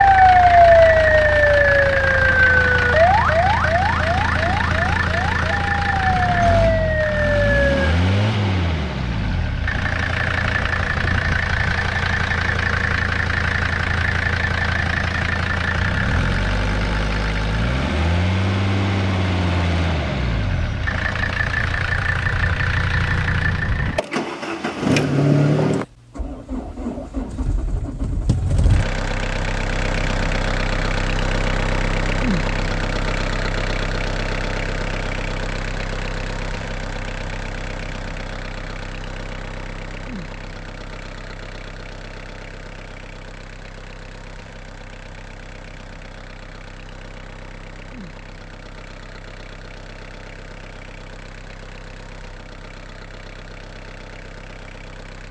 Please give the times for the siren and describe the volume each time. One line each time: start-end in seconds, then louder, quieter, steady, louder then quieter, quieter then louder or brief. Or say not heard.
0.0-8.0 quieter then louder.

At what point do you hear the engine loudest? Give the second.
25 s.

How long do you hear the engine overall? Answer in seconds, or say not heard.
55 s.